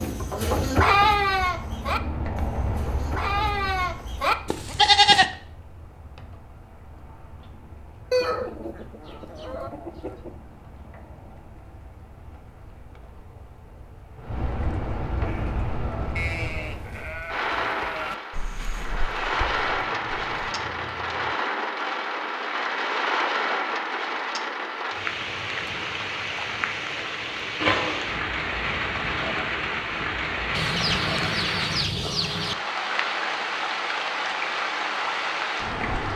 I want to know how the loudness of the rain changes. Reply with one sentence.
The loudness of the rain goes up.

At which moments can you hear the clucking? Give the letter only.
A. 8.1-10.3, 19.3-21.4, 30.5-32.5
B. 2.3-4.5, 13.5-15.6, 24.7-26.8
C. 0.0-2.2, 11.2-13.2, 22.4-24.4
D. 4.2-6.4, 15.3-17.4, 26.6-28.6
A.